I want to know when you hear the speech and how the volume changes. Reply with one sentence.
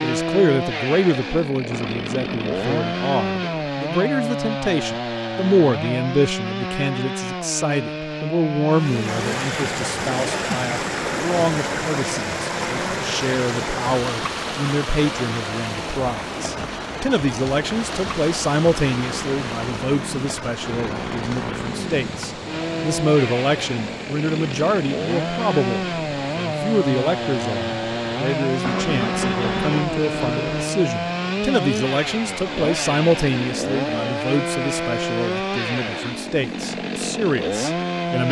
You can hear the speech from 0.0 to 38.2 s, at a steady volume.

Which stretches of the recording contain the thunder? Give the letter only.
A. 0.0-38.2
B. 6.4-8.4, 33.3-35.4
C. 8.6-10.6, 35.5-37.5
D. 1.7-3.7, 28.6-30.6
D.